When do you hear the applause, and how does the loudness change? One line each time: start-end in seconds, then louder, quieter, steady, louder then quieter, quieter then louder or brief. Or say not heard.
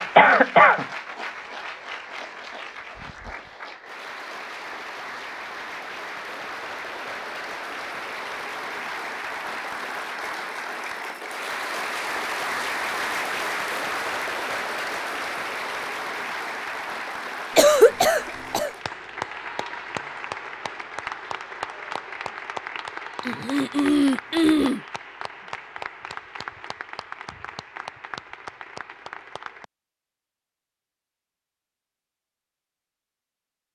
0.0-29.6 louder then quieter.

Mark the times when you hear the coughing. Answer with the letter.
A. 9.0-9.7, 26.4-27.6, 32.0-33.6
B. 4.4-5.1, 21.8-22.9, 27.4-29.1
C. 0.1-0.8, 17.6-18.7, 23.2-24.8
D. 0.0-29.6
C.